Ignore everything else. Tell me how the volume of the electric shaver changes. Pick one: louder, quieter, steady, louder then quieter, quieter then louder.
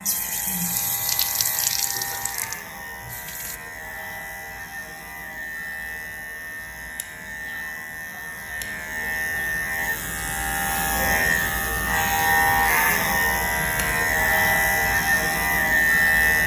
louder.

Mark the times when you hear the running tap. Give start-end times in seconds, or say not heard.
0.0-3.6.